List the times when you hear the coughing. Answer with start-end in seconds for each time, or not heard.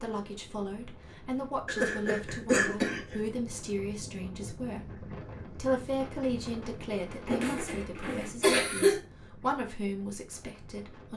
1.6-3.1, 7.2-9.0.